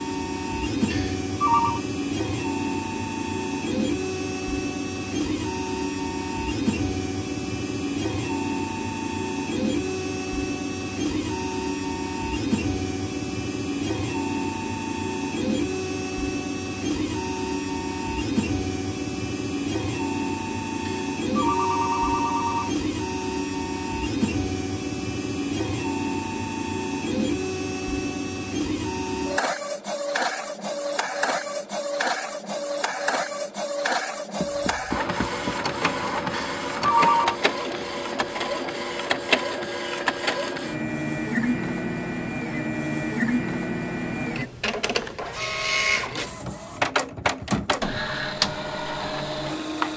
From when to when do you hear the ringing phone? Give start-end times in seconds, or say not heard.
0.9-1.8, 20.9-22.8, 36.3-37.4.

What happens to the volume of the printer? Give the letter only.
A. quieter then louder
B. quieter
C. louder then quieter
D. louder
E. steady
E.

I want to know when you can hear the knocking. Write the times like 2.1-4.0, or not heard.
34.4-35.5.